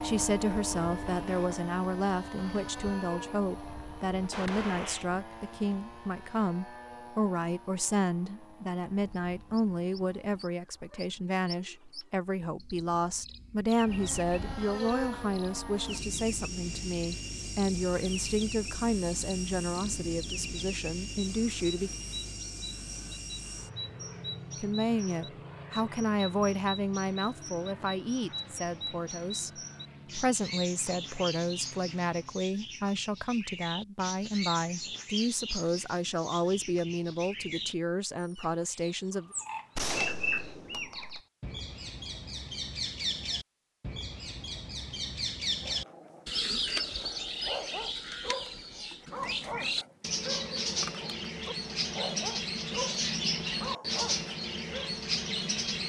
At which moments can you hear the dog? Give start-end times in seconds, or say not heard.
45.6-55.0.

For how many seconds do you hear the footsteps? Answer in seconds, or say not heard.
not heard.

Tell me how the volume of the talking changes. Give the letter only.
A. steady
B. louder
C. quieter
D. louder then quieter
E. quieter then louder
A.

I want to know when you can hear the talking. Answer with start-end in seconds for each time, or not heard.
0.0-21.9, 24.6-39.3.